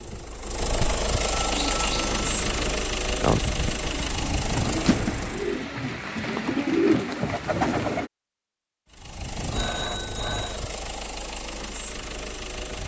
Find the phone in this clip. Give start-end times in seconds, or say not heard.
0.8-2.7, 9.5-10.7.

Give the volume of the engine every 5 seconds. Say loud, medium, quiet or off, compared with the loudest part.
loud, medium, medium.